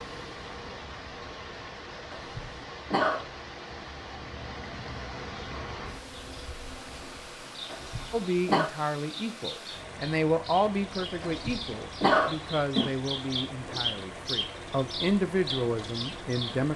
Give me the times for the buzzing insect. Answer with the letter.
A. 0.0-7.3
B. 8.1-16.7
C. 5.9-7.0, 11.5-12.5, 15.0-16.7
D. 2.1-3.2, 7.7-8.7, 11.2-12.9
A.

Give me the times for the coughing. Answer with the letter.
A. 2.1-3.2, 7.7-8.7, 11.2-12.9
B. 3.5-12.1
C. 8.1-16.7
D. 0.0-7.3
A.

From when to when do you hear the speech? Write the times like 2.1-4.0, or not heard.
8.1-16.7.